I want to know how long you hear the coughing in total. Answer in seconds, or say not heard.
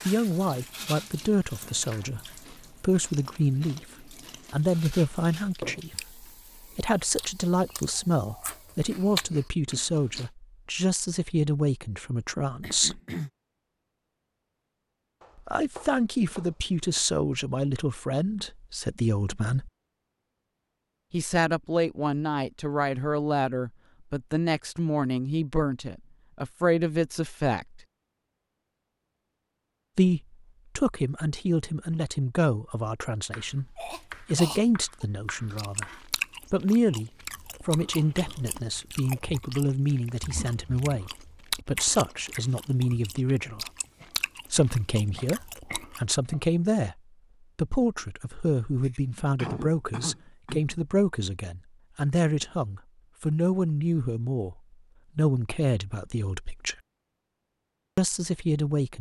4 s.